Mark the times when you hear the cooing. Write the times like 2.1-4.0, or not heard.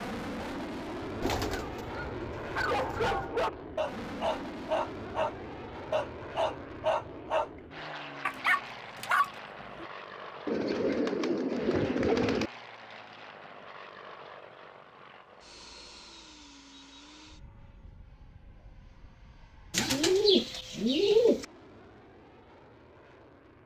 1.2-3.3, 10.4-12.5, 19.7-21.4.